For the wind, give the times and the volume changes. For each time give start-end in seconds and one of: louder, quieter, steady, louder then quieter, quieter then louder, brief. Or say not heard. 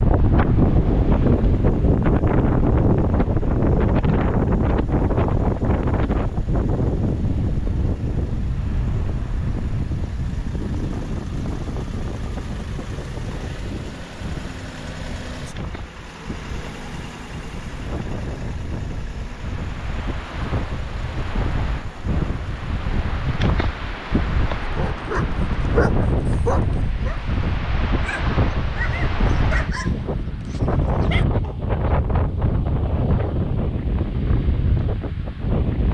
0.0-35.8 quieter then louder.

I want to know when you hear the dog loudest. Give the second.
26 s.